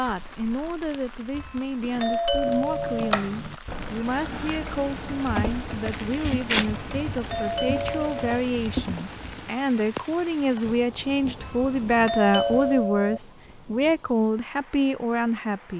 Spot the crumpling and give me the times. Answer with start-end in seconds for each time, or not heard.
5.8-6.7.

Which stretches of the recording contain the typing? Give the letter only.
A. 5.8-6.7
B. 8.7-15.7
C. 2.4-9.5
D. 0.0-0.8
C.